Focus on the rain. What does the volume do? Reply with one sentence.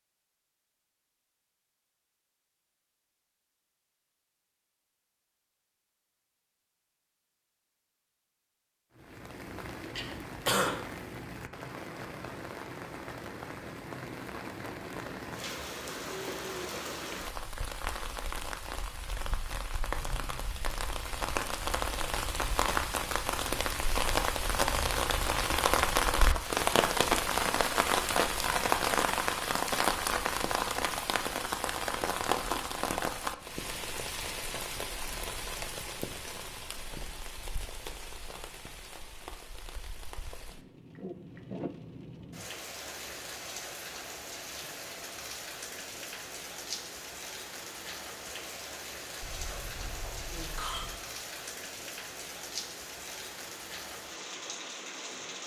The loudness of the rain goes up, then down.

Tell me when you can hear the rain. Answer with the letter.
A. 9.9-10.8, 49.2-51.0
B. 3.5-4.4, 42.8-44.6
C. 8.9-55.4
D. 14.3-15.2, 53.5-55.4
C.